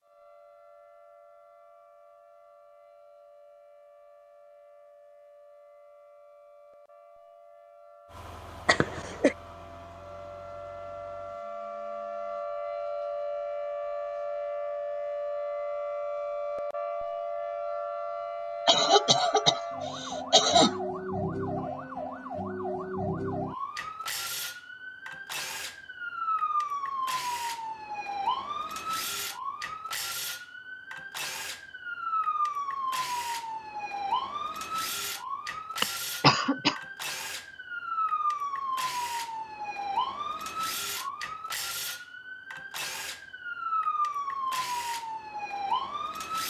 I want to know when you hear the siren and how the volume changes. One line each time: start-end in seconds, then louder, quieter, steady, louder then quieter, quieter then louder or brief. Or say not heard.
0.0-46.4 louder.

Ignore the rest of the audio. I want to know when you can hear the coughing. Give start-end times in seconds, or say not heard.
8.7-9.3, 18.6-20.8, 35.8-36.8.